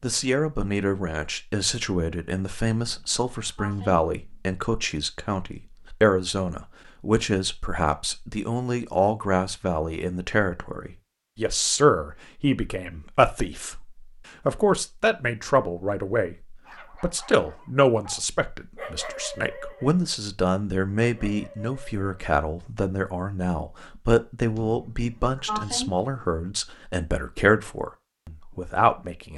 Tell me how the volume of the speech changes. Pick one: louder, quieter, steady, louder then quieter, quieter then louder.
steady.